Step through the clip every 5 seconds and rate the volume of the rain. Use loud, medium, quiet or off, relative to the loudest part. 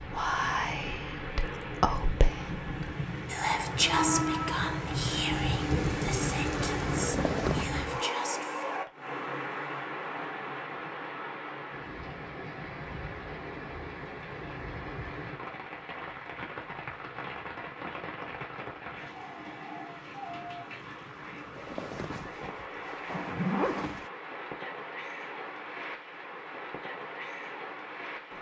loud, loud, medium, medium, medium, medium.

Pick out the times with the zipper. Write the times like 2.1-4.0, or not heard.
7.0-7.7, 21.6-24.1.